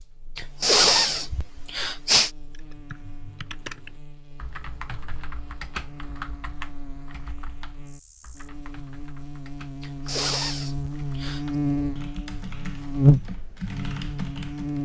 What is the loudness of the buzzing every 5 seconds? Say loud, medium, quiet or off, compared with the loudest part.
quiet, quiet, loud.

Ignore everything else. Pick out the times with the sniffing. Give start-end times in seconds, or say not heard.
0.3-2.3, 9.8-11.4.